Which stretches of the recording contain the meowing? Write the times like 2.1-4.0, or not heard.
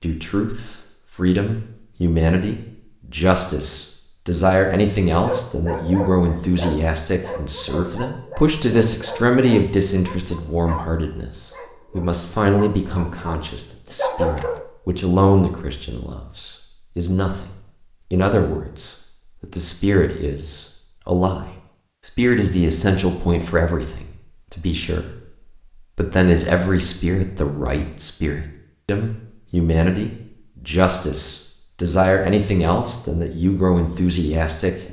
not heard.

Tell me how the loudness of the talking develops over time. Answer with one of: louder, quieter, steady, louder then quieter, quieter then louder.
steady.